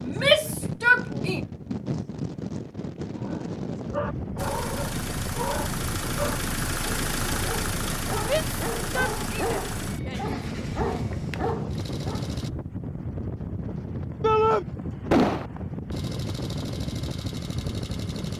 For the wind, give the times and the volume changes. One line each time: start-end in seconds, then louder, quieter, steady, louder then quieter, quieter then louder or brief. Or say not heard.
0.0-18.3 steady.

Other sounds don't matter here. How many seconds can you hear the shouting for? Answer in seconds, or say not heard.
4 s.